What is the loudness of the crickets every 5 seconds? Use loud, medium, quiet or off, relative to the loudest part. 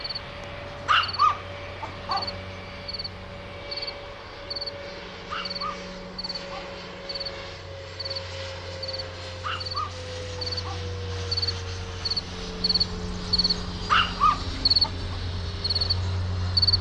medium, quiet, loud, loud.